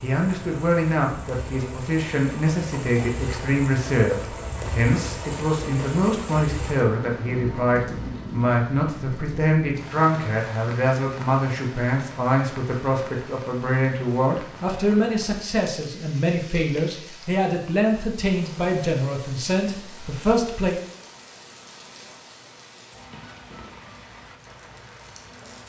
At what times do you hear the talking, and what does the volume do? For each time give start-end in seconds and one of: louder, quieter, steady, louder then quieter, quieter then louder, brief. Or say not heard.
0.0-20.8 steady.